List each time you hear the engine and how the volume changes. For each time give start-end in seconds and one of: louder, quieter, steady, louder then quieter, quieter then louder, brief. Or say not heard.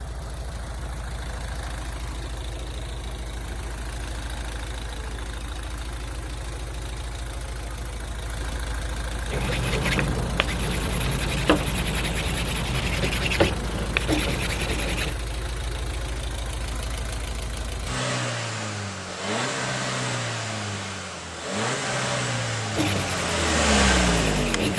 0.0-24.7 louder.